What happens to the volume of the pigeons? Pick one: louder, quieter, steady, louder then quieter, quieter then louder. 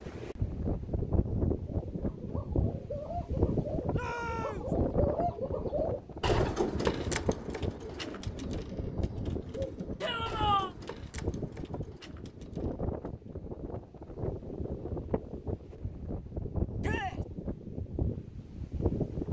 louder then quieter.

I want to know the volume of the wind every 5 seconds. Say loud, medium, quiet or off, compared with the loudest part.
loud, loud, medium, loud.